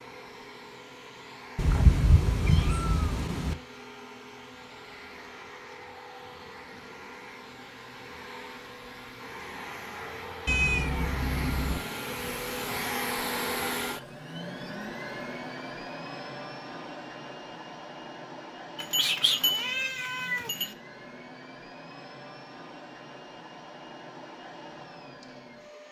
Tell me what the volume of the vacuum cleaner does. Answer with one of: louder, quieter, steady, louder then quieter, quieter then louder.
louder then quieter.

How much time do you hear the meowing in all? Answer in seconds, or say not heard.
5 s.